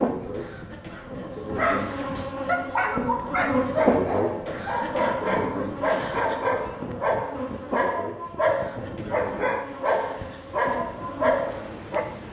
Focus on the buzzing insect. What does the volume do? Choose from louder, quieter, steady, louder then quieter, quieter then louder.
louder then quieter.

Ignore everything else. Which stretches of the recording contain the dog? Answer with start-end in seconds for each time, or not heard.
1.6-12.1.